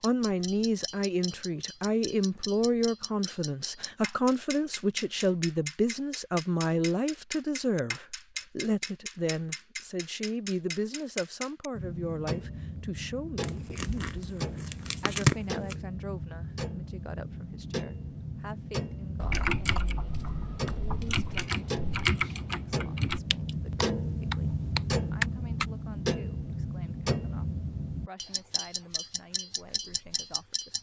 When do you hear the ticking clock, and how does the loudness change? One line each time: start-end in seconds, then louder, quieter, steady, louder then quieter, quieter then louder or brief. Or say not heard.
0.0-30.7 louder.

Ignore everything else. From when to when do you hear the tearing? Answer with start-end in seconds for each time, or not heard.
13.4-15.8.